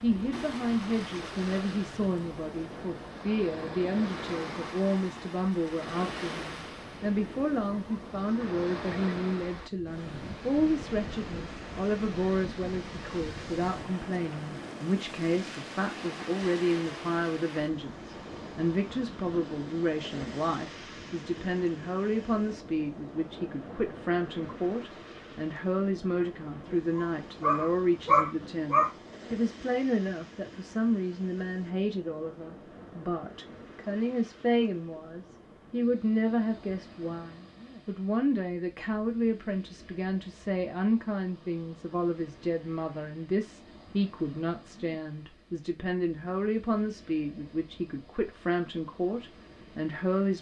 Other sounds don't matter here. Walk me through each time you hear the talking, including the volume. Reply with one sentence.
You can hear the talking from 0.0 to 50.3 s, at a steady volume.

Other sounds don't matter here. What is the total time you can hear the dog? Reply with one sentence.
You can hear the dog for 2 seconds altogether.